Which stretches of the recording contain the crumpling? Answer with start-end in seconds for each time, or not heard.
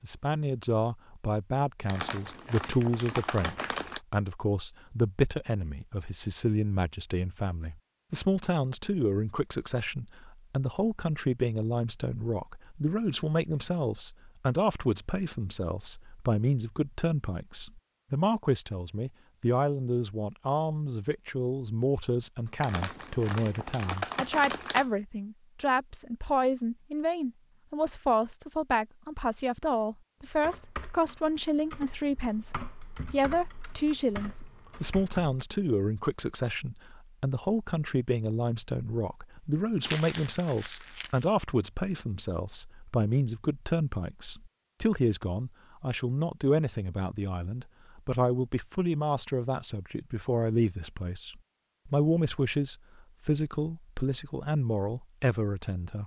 1.9-4.0, 22.6-24.9, 39.4-41.3.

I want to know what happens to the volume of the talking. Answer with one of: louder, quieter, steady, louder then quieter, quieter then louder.
steady.